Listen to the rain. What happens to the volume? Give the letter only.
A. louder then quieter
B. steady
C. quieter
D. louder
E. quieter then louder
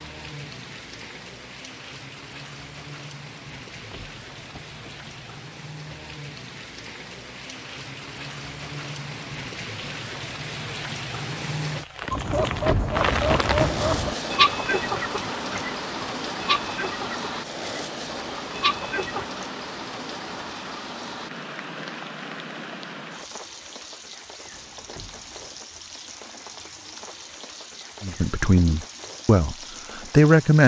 A.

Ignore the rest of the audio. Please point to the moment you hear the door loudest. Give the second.
13 s.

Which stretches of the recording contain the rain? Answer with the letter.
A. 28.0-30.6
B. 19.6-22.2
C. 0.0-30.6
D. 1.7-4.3
C.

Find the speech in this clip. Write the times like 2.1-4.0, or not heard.
28.0-30.6.